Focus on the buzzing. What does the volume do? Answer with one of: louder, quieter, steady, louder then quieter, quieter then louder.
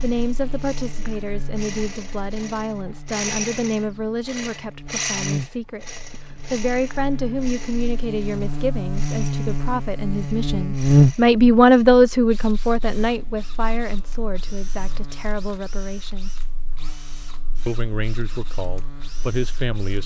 louder then quieter.